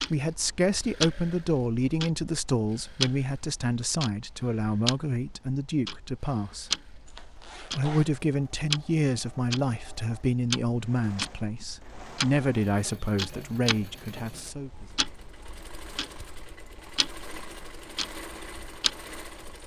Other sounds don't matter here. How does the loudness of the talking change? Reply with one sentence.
The loudness of the talking stays about the same.